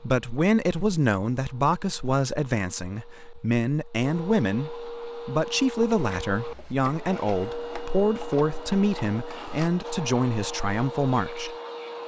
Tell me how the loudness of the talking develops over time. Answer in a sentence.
The volume of the talking stays about the same.